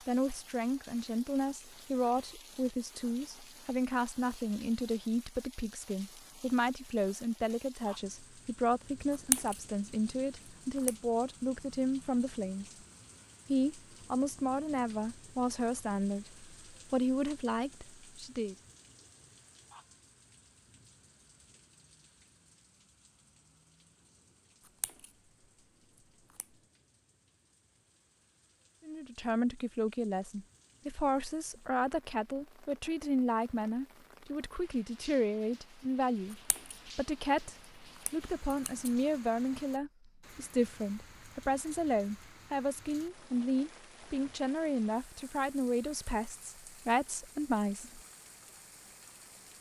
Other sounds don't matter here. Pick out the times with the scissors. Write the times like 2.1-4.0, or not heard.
9.1-10.9, 24.6-26.6, 36.3-39.0.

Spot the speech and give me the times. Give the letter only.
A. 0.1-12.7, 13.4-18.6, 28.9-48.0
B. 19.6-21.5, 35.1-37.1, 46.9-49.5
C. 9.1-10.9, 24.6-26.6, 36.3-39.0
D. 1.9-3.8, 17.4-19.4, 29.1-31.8
A.